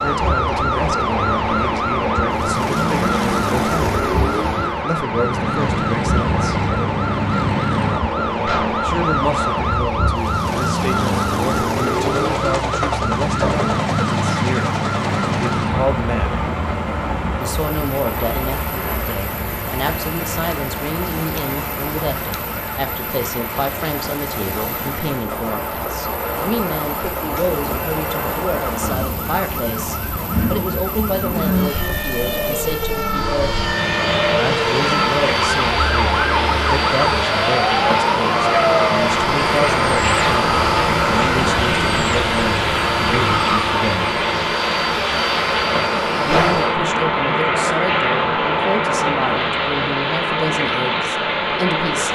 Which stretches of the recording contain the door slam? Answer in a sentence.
You can hear the door slam from 8.4 to 8.8 s and from 46.3 to 46.7 s.